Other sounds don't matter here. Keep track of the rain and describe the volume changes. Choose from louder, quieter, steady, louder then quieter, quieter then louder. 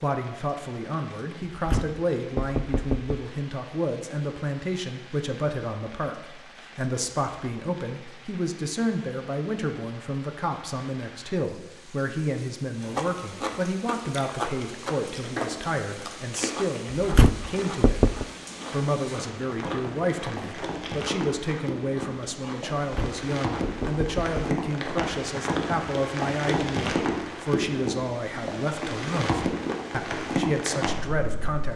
louder.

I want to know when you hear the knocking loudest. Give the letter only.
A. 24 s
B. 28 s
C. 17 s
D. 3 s
C.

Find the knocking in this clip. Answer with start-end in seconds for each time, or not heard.
1.6-3.2, 16.9-18.2, 22.8-24.4.